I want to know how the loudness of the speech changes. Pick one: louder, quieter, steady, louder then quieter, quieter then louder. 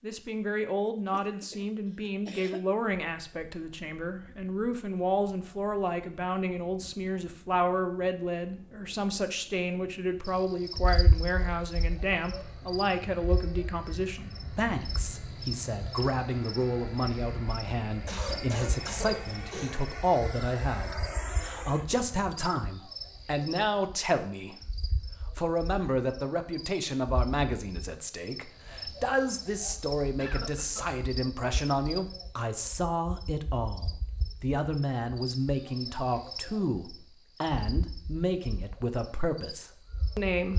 steady.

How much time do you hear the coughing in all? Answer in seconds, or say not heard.
4 s.